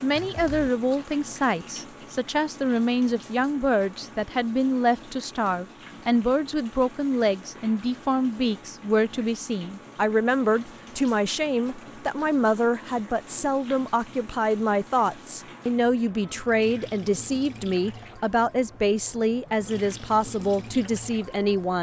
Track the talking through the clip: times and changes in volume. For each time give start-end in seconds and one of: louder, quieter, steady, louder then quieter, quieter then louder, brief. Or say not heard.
0.0-21.7 steady.